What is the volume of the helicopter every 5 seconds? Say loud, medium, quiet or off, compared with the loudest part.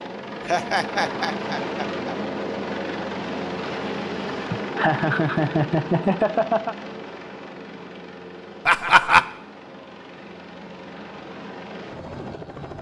loud, medium, medium.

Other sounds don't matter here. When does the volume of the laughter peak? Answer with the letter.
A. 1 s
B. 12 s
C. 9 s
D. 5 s
C.